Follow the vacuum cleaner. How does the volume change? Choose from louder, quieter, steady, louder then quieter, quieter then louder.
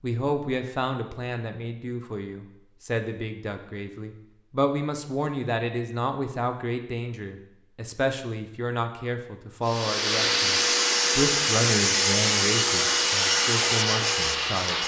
steady.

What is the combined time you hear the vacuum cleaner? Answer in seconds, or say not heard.
5 s.